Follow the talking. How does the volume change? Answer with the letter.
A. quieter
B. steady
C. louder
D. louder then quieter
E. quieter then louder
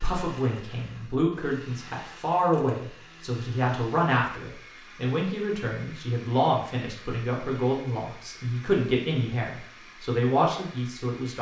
B.